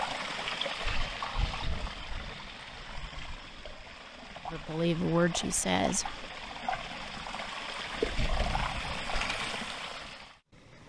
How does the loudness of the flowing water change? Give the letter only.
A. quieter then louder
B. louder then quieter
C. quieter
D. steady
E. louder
A.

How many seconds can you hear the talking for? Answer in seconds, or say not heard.
2 s.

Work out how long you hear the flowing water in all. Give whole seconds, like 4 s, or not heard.
11 s.